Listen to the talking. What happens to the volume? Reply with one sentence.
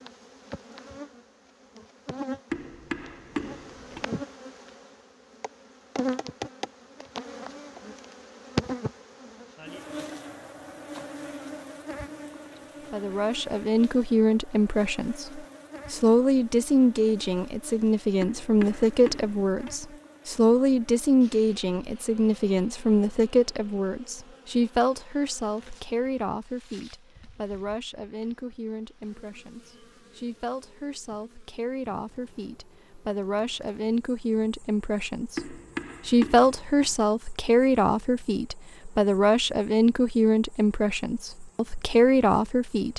The volume of the talking goes down, then up.